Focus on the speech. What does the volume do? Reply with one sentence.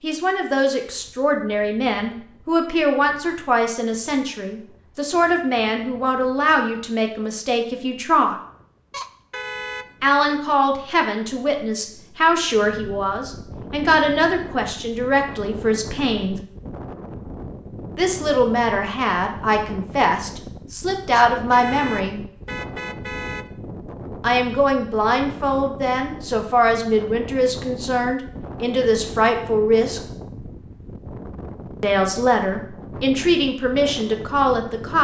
The volume of the speech stays about the same.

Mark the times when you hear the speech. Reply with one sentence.
You can hear the speech from 0.0 to 8.3 s, from 10.0 to 16.4 s, from 17.9 to 22.2 s, from 24.2 to 30.0 s and from 31.8 to 34.9 s.